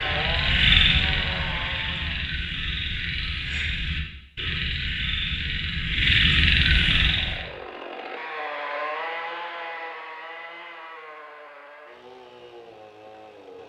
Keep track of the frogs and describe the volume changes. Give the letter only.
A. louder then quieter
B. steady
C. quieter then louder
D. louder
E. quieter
C.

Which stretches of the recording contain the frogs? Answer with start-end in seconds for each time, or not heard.
0.0-7.5.